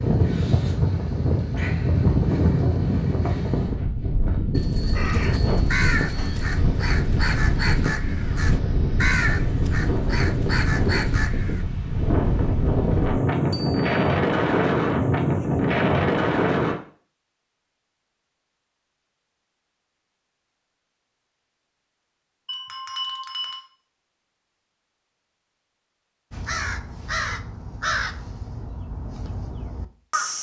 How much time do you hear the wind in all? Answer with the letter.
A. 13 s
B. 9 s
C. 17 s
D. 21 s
C.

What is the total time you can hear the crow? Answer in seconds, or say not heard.
11 s.